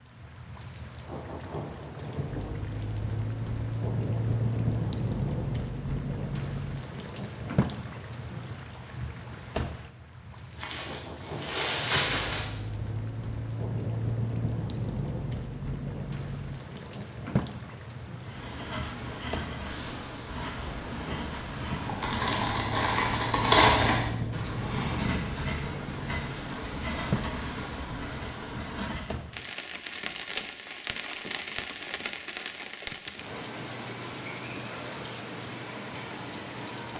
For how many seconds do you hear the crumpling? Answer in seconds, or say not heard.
4 s.